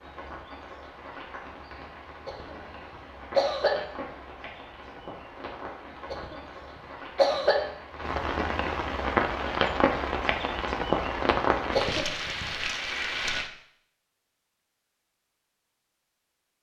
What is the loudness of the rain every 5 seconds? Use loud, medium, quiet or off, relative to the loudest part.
quiet, loud, loud, off.